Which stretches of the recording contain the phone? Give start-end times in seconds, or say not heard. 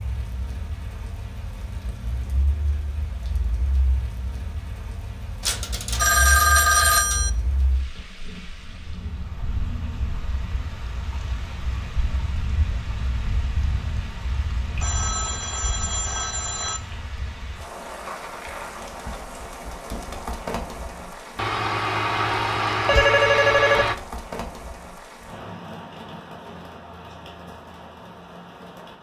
5.4-7.3, 14.8-16.8, 21.4-23.9.